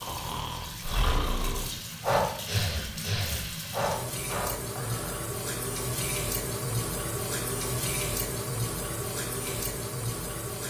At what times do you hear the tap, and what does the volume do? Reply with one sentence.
You can hear the tap from 0.0 to 10.6 s, getting louder.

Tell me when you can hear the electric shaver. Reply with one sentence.
You can't hear the electric shaver here.